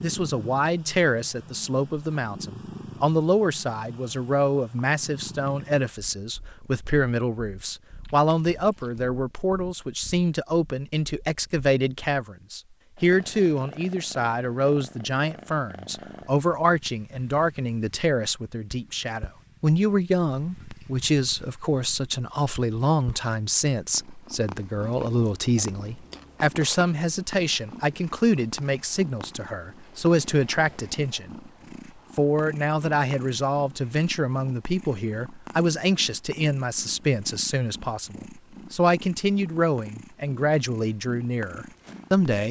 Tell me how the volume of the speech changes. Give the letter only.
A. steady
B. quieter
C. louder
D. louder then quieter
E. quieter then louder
A.